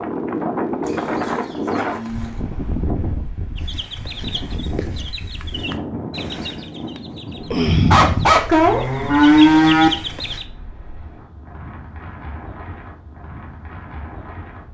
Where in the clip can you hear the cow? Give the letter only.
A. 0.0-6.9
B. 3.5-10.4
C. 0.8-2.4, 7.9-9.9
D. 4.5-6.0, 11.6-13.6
C.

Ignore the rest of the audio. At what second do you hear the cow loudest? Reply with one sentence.
The volume of the cow peaks at 9 seconds.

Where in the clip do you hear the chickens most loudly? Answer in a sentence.
The loudest moment of the chickens is at 8 seconds.